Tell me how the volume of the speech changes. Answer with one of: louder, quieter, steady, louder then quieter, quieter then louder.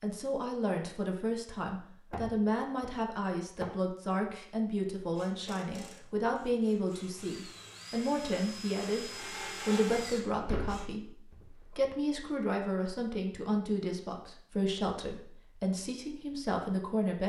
steady.